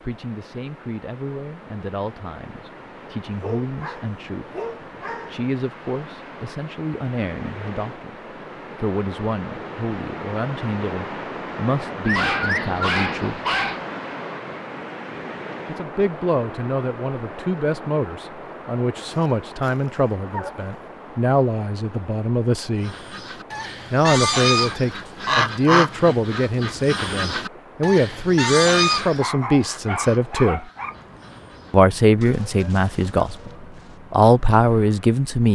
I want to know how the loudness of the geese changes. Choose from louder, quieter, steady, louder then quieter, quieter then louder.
quieter.